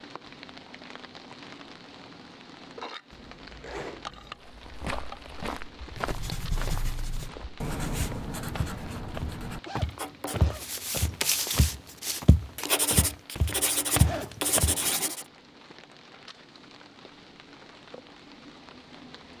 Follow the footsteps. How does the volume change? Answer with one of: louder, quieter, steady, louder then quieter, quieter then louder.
louder.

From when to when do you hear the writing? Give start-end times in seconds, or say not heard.
6.0-15.2.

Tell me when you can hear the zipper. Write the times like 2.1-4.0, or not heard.
3.1-4.4, 9.7-10.7, 13.9-15.2.